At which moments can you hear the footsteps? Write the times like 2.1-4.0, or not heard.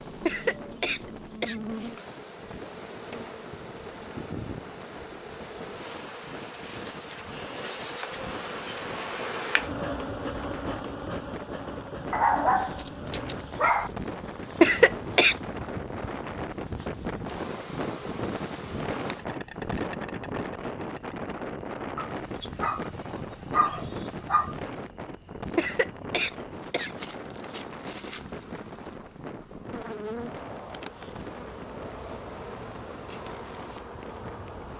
not heard.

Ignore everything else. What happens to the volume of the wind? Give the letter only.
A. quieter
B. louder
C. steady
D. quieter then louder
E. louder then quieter
E.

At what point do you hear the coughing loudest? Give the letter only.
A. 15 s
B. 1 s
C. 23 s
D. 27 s
A.